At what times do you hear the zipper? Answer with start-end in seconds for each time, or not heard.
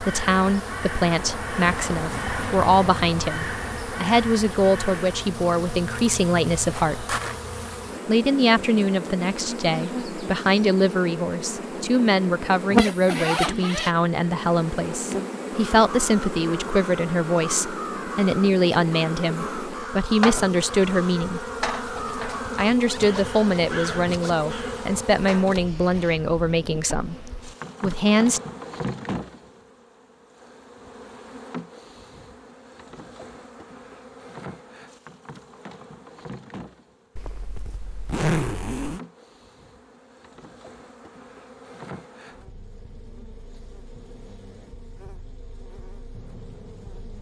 12.8-13.9, 22.6-24.4, 37.1-39.0.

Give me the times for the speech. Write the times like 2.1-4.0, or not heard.
0.0-7.2, 8.1-21.5, 22.6-27.2, 27.8-28.4.